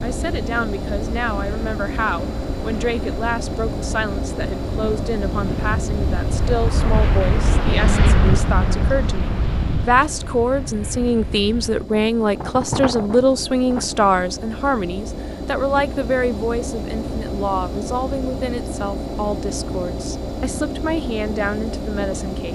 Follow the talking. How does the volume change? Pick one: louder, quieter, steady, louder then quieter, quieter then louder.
louder then quieter.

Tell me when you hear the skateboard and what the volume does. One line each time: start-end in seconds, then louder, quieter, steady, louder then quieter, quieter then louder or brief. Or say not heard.
not heard.